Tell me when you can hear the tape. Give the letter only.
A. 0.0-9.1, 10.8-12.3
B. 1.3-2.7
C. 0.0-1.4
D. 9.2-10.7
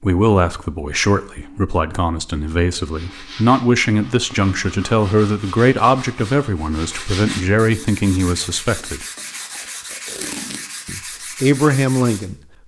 D.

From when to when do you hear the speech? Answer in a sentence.
You can hear the speech from 0.0 to 9.1 s and from 10.8 to 12.3 s.